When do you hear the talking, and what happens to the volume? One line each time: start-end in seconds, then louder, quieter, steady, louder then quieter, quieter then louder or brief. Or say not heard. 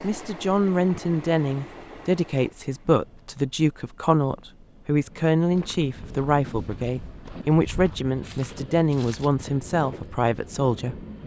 0.0-11.0 steady.